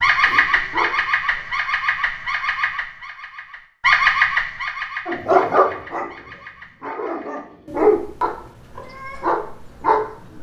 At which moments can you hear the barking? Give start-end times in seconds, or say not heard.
0.0-1.4, 5.0-10.1.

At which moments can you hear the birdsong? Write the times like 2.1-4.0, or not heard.
0.0-10.3.